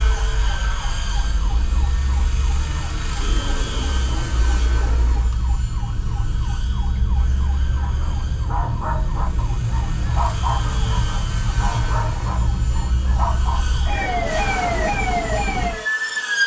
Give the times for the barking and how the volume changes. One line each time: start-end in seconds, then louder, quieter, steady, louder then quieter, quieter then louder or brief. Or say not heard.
7.8-13.8 steady.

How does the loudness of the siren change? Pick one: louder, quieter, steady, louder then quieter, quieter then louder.
louder.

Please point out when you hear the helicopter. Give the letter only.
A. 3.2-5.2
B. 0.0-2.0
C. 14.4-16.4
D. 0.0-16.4
D.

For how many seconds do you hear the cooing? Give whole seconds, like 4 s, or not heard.
2 s.